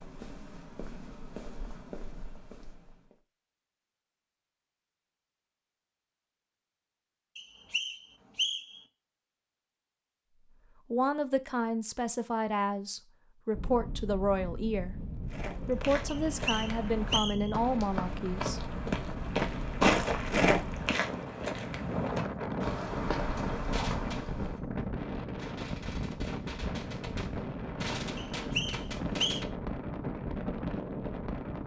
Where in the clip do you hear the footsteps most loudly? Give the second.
20 s.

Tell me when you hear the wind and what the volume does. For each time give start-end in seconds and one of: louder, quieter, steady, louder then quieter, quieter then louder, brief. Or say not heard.
13.5-31.6 louder.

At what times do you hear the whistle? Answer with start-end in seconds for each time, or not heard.
7.3-8.8, 16.1-17.5, 28.1-29.4.